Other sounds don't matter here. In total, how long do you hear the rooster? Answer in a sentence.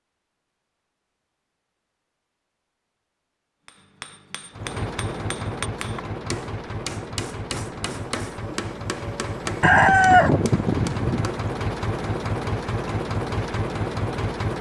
You can hear the rooster for 2 seconds altogether.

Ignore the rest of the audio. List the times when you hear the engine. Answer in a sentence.
You can hear the engine from 4.5 to 14.5 s.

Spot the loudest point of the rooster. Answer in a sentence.
The loudest moment of the rooster is at 10 seconds.